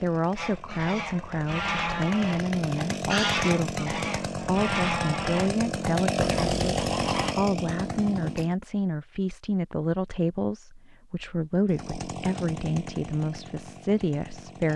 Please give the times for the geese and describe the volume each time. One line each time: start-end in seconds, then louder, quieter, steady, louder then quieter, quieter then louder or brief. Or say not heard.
0.3-7.3 steady.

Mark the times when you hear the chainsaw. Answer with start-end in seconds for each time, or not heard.
0.0-8.6, 11.7-14.7.